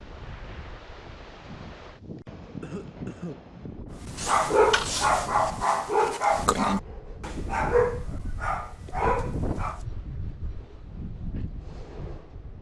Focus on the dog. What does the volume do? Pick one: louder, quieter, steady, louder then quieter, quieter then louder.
quieter.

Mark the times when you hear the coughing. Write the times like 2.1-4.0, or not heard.
2.6-3.5.